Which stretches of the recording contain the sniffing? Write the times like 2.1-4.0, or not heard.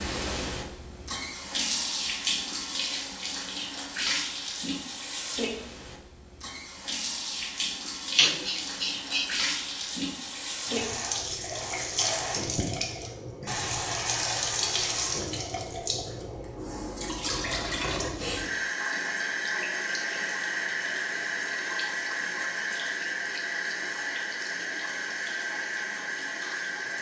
8.2-9.3.